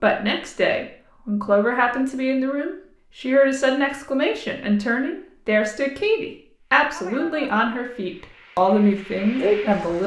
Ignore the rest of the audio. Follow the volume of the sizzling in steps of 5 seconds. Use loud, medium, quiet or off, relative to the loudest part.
off, loud.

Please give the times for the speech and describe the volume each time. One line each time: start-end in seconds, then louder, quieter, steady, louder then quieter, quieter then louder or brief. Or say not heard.
0.0-10.0 steady.